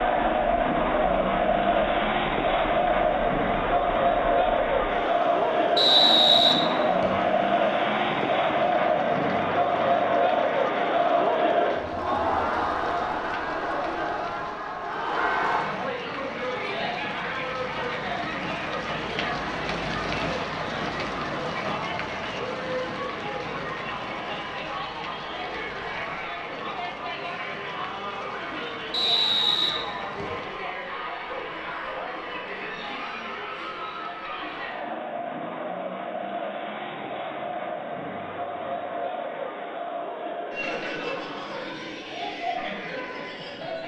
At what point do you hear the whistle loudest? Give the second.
6 s.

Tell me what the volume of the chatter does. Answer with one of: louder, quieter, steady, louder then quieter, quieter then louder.
quieter.